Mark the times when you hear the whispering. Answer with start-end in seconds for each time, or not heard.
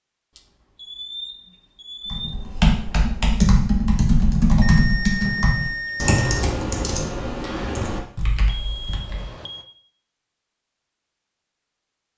not heard.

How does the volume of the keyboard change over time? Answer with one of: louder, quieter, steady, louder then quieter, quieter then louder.
quieter.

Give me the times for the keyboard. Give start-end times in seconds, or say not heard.
2.1-9.3.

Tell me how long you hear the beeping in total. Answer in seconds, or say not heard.
5 s.